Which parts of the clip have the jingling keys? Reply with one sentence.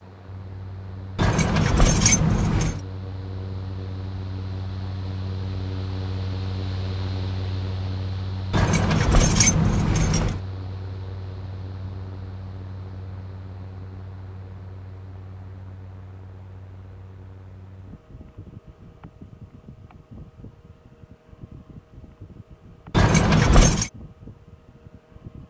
The jingling keys can be heard from 1.1 to 2.8 s, from 8.5 to 10.4 s and from 22.9 to 23.9 s.